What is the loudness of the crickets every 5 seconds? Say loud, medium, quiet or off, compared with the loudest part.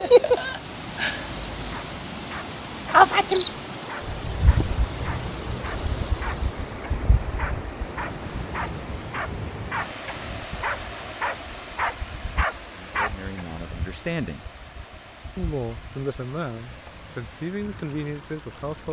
loud, quiet, quiet, quiet.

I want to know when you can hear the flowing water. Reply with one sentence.
You can hear the flowing water from 0.0 to 18.8 s.